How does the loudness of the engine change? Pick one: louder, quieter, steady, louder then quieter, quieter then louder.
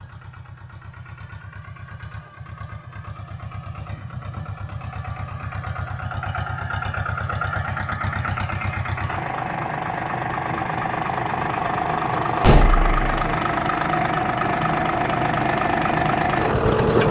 louder.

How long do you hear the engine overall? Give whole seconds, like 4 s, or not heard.
17 s.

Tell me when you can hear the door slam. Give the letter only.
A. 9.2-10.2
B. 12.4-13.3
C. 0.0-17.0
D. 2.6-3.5
B.